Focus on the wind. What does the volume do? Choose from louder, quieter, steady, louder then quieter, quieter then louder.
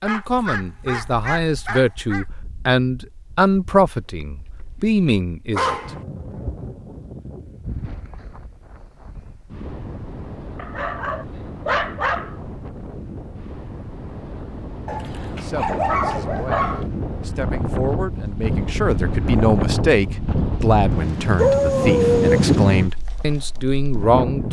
louder.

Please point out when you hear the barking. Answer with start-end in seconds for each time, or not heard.
0.1-2.2, 5.5-6.0, 10.6-12.3, 14.8-16.9, 21.4-22.6.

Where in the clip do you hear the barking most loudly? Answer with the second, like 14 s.
22 s.